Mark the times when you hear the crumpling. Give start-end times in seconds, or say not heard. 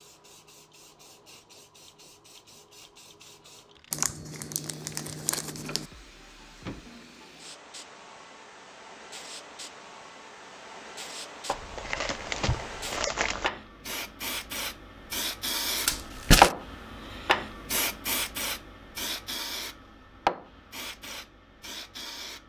3.9-5.8, 11.4-13.5, 15.8-16.6.